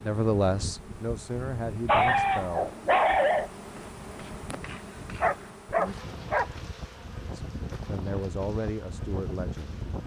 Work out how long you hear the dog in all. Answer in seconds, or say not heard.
3 s.